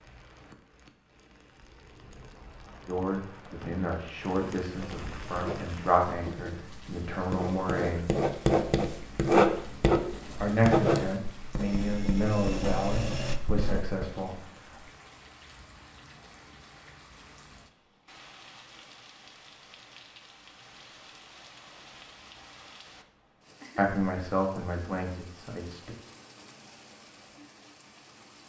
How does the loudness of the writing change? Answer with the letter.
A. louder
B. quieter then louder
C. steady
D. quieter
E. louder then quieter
E.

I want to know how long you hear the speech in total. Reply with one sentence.
You can hear the speech for 12 seconds altogether.